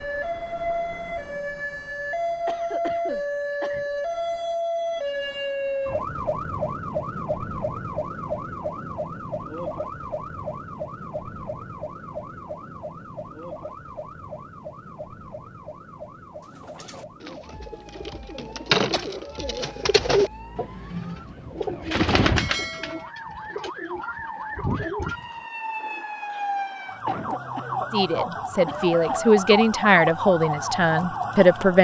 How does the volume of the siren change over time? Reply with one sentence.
The loudness of the siren goes down, then up.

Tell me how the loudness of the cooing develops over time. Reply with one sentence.
The volume of the cooing goes up, then down.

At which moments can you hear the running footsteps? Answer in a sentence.
You can't hear the running footsteps here.